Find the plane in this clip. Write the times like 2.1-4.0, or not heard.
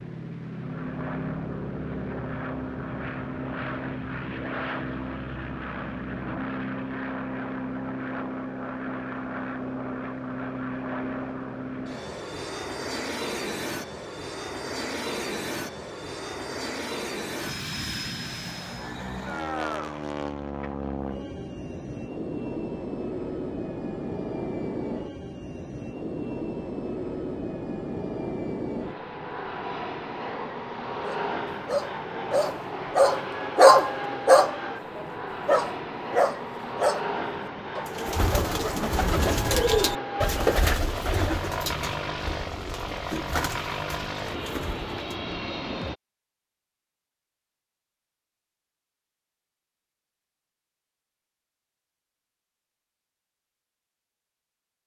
0.0-46.0.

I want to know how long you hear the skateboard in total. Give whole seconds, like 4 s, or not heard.
not heard.